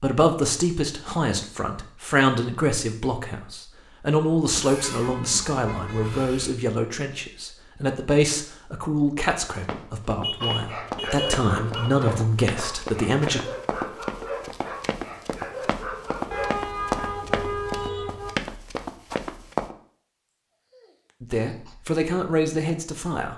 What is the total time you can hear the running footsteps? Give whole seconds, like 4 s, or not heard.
10 s.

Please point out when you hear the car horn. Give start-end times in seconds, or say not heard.
4.8-6.2, 10.2-11.8, 16.3-18.3.